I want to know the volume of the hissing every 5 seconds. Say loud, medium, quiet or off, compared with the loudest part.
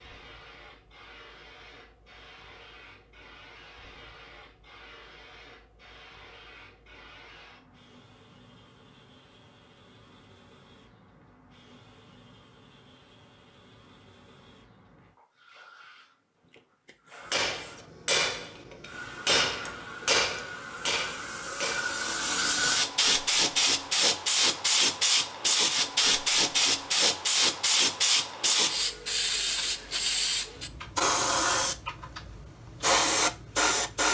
quiet, quiet, quiet, quiet, loud, loud, loud.